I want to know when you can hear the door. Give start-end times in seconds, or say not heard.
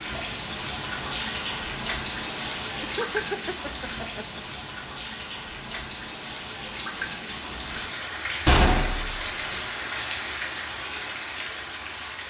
8.4-9.6.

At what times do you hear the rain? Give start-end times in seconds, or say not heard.
0.0-12.2.